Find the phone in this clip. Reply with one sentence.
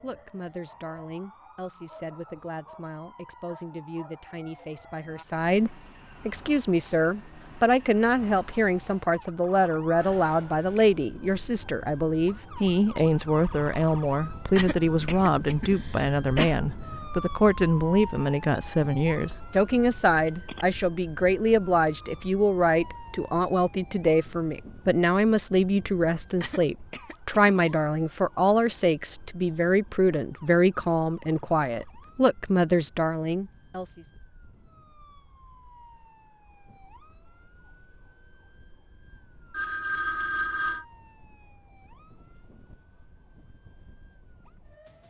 You can hear the phone from 9.9 to 10.8 s, from 19.3 to 20.6 s and from 39.5 to 40.9 s.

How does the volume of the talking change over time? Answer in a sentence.
The loudness of the talking goes up.